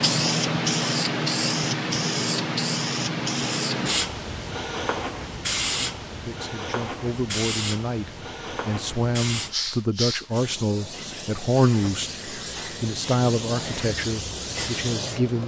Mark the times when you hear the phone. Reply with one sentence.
The phone can't be heard in this clip.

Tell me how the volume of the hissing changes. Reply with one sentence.
The volume of the hissing goes down.